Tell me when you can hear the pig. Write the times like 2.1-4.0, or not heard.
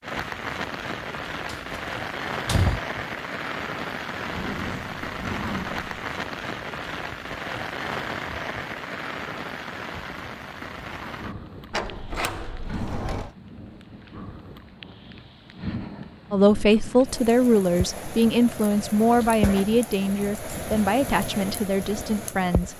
4.2-6.0.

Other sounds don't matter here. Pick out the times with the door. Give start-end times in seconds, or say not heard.
1.4-2.8, 11.7-13.3.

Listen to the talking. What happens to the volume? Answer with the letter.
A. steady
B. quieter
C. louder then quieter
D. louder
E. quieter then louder
B.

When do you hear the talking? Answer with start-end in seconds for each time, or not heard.
16.3-22.7.